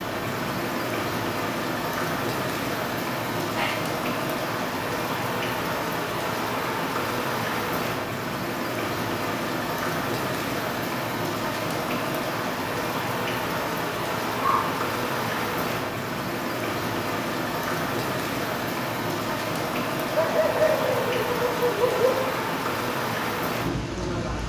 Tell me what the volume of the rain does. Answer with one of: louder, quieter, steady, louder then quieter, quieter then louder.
steady.